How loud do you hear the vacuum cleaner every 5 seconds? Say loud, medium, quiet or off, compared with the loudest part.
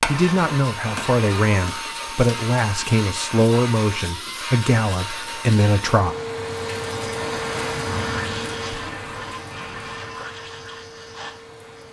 loud, loud, medium.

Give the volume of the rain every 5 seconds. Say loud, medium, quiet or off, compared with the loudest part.
off, loud, quiet.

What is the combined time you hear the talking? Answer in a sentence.
The talking can be heard for 6 seconds in total.